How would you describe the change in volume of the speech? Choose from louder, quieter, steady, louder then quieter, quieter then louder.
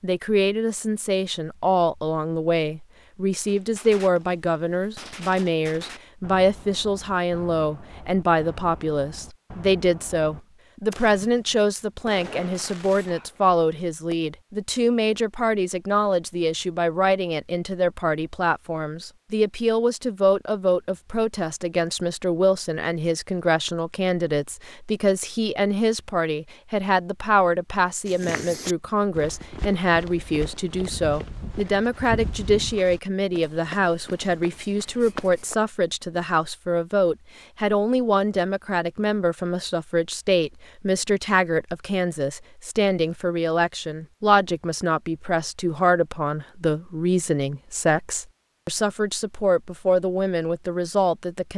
steady.